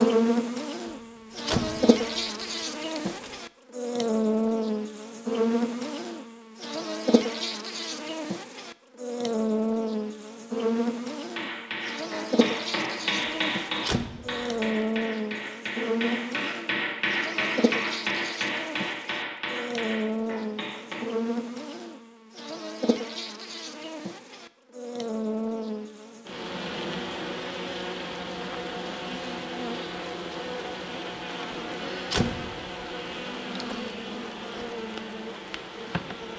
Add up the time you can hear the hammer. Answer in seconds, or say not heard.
10 s.